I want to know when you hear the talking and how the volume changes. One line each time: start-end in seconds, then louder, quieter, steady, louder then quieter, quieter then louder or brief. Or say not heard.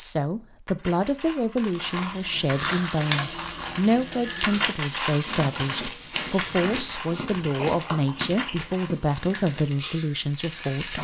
0.0-10.9 steady.